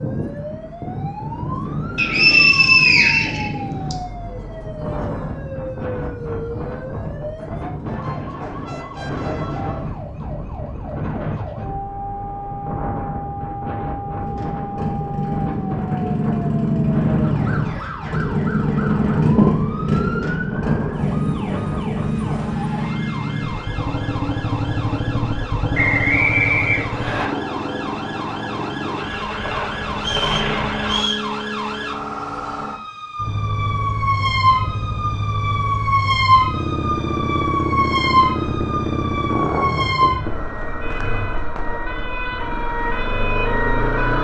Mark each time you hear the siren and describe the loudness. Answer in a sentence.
You can hear the siren from 0.0 to 44.1 s, getting louder.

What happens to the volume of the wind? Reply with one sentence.
The volume of the wind stays about the same.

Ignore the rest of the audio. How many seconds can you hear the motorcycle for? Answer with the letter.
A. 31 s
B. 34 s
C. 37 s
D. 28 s
D.